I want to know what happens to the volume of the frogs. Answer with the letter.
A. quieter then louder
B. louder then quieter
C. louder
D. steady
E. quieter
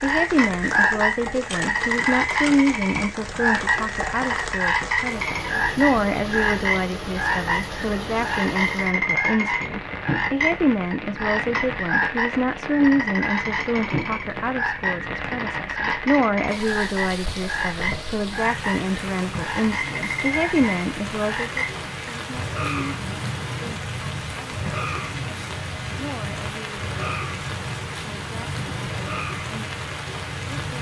E.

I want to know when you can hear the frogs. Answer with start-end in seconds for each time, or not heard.
0.0-30.7.